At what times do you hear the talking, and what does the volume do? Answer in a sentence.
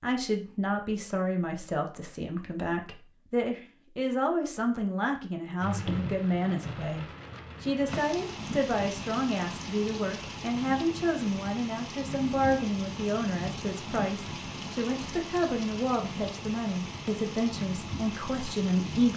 You can hear the talking from 0.0 to 19.1 s, at a steady volume.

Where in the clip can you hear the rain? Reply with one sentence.
You can hear the rain from 5.6 to 19.1 s.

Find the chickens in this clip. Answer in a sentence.
The chickens can't be heard in this clip.